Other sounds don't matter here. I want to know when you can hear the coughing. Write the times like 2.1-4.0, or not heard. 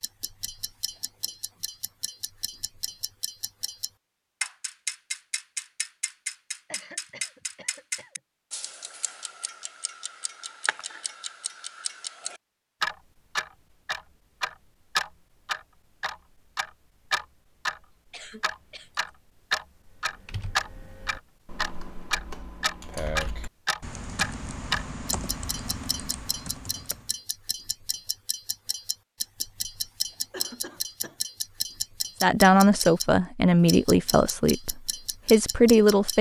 6.7-8.2, 18.1-19.1, 30.3-31.2.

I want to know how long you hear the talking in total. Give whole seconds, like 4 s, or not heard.
4 s.